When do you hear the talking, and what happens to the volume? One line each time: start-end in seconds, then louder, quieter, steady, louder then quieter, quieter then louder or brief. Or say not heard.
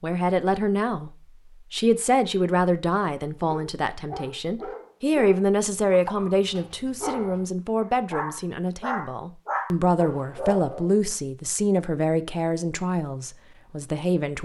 0.0-14.4 steady.